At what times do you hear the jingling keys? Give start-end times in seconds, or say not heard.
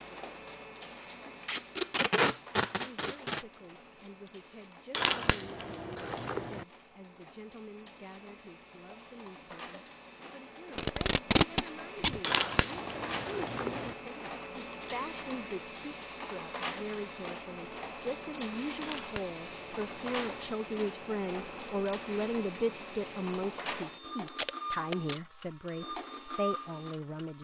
4.9-6.7, 12.2-13.9, 18.8-20.5.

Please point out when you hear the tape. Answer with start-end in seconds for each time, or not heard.
1.4-3.5, 10.8-12.2, 24.2-25.2.